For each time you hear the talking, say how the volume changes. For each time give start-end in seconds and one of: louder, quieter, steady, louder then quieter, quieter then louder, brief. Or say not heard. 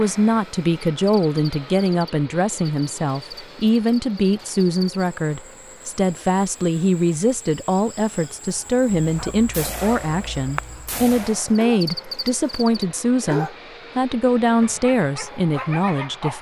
0.0-16.3 steady.